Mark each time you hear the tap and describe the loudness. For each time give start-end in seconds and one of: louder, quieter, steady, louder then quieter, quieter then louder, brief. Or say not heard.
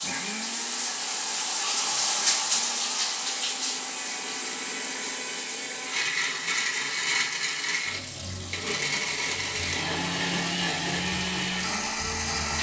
0.0-12.5 quieter.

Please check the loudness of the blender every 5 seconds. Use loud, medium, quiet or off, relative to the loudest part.
medium, loud, loud.